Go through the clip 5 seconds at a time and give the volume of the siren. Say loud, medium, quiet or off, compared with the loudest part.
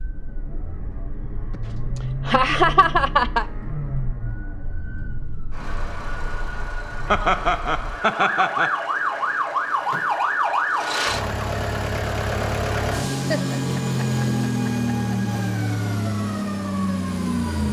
quiet, loud, loud, medium.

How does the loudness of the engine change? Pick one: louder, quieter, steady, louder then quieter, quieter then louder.
louder.